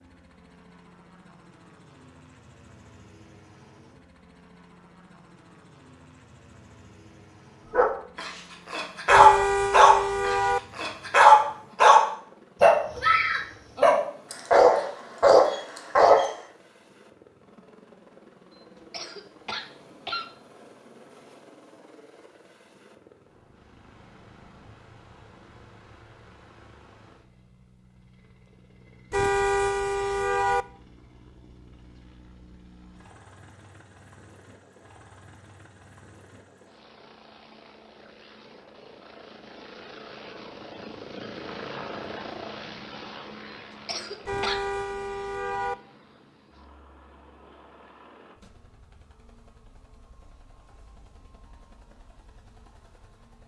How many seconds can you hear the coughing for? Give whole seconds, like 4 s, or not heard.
2 s.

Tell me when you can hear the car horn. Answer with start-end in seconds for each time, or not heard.
9.1-10.6, 29.1-30.6, 44.2-45.8.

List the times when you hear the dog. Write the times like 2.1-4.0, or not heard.
7.7-16.3.